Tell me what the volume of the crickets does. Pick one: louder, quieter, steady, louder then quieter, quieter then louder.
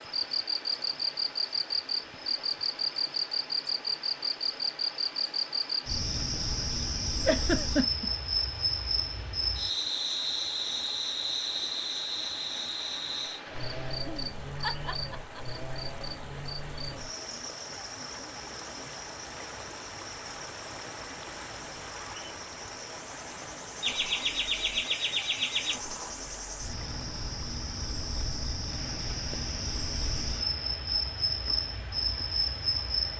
quieter then louder.